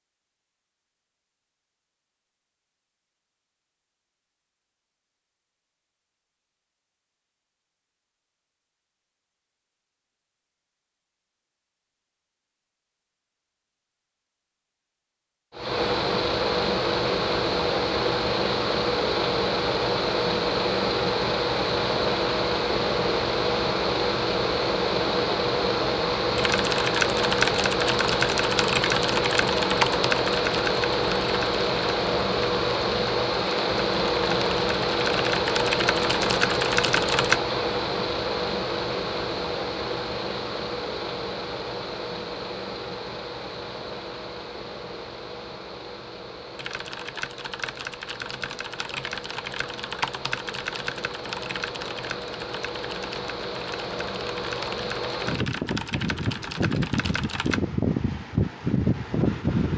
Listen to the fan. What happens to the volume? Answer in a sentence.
The volume of the fan goes down, then up.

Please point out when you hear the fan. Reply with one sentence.
The fan can be heard from 15.5 to 59.7 s.